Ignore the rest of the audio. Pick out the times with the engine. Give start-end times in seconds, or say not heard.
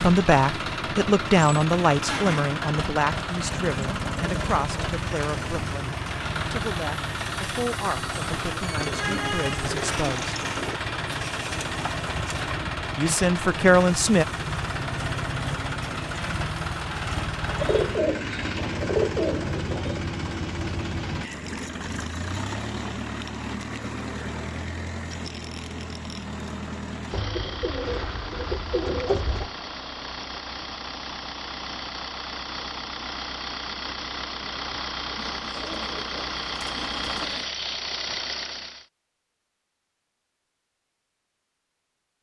0.0-38.9.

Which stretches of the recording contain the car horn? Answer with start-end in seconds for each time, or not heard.
not heard.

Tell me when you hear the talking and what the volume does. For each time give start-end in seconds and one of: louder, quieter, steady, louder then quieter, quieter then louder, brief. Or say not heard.
0.0-10.3 quieter
12.9-14.2 brief.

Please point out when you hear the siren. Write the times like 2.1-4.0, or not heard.
not heard.